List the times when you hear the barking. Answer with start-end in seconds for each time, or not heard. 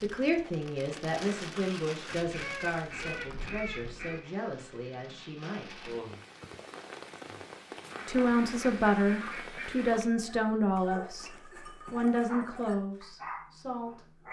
10.1-14.2.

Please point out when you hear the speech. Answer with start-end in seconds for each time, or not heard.
0.0-6.0, 8.1-11.3, 11.9-14.1.